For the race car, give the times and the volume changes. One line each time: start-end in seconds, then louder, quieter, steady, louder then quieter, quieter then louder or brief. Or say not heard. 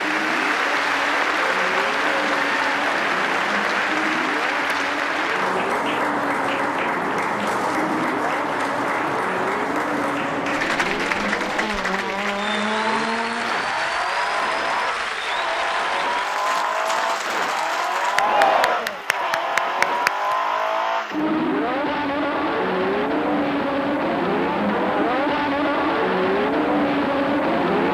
0.0-27.8 louder.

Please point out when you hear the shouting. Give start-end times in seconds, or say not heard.
18.1-19.1.